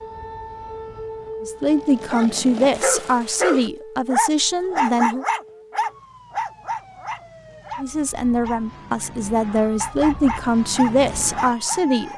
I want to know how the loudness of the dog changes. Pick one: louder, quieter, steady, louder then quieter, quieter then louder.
quieter then louder.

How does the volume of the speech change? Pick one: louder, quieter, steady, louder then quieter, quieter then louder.
steady.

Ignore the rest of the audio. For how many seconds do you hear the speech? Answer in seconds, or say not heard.
8 s.